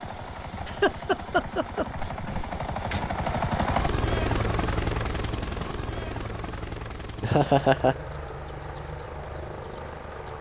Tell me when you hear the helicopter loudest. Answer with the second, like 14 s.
4 s.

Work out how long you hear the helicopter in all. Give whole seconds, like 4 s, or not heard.
10 s.